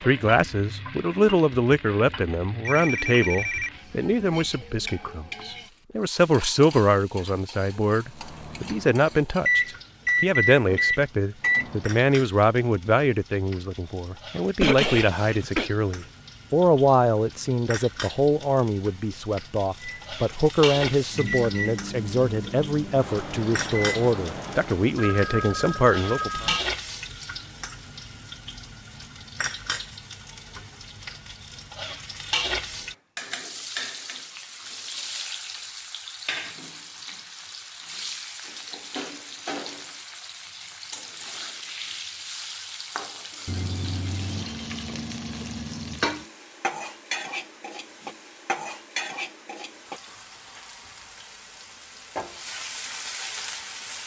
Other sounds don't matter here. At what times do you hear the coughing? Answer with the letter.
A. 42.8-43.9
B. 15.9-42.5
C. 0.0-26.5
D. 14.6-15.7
D.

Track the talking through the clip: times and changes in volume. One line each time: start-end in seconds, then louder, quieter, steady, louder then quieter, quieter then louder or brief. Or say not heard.
0.0-26.5 steady.